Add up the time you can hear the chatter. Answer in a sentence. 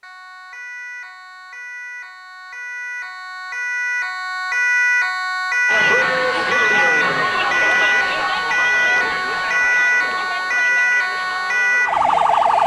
You can hear the chatter for 7 seconds altogether.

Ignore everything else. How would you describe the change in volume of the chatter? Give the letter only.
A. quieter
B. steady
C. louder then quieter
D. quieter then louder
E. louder
A.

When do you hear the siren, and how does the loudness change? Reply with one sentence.
You can hear the siren from 0.0 to 12.6 s, getting louder.